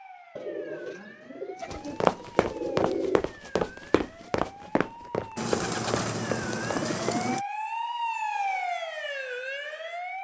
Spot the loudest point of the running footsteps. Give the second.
2 s.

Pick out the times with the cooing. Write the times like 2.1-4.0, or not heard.
0.3-3.2, 5.3-7.5.